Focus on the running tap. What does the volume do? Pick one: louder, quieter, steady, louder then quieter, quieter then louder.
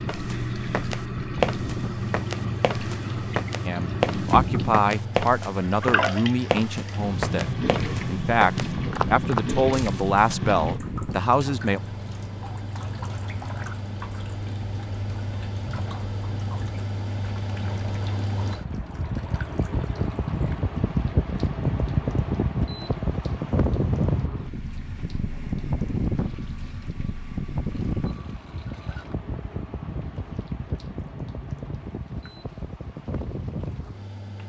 quieter.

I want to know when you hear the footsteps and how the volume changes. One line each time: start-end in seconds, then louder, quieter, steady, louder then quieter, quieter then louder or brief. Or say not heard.
0.1-10.3 steady.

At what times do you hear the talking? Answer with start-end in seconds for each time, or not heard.
3.6-11.8.